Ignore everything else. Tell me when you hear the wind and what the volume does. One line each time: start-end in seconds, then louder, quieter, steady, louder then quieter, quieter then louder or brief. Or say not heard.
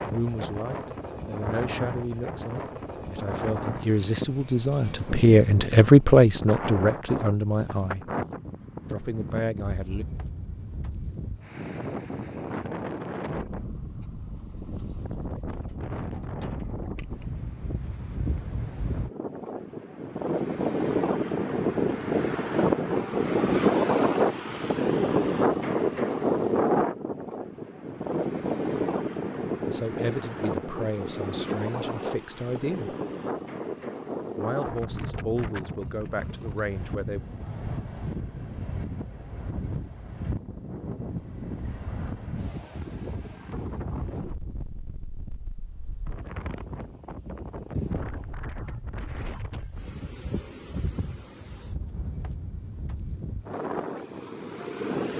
0.0-55.1 louder then quieter.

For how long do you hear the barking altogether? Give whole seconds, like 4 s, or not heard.
not heard.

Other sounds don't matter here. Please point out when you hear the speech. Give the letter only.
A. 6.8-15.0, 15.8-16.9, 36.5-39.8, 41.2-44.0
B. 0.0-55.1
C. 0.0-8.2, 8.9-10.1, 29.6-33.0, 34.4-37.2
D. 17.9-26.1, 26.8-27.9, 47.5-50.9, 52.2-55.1
C.